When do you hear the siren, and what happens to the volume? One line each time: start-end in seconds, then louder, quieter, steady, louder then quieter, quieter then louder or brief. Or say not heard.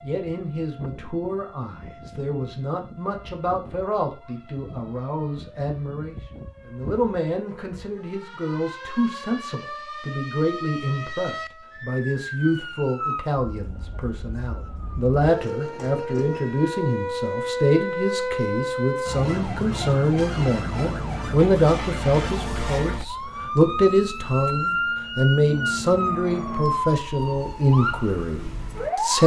0.0-29.2 louder.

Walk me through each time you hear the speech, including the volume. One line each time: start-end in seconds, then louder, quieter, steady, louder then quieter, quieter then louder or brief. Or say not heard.
0.0-29.2 louder.